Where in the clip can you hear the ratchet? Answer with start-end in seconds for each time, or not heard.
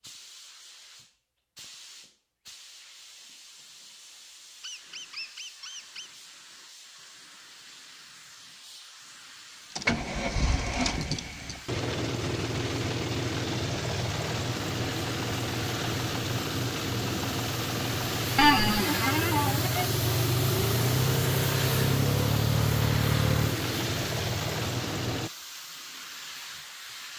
not heard.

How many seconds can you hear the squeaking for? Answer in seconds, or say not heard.
3 s.